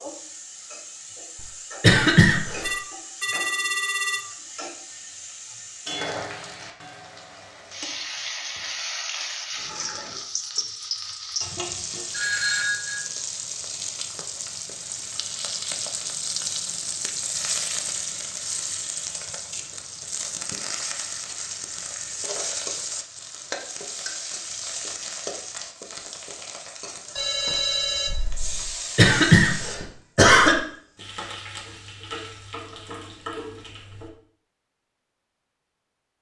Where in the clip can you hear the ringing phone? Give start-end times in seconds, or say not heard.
2.6-4.2, 12.1-13.0, 27.1-28.7.